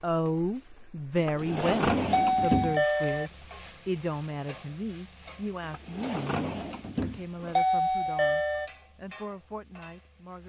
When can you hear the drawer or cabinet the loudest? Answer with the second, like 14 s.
2 s.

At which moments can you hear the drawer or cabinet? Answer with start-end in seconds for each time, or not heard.
1.1-2.8, 5.6-7.5.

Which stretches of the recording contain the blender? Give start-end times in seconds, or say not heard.
not heard.